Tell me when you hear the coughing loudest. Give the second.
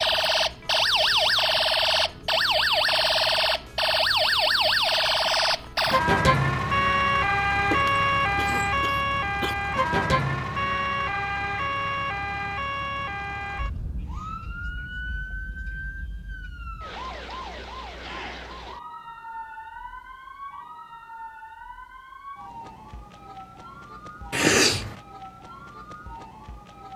25 s.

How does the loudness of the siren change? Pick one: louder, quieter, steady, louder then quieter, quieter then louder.
quieter.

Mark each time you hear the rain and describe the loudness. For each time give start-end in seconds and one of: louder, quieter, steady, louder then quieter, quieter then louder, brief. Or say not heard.
not heard.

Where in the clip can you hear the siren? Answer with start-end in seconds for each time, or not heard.
0.0-26.9.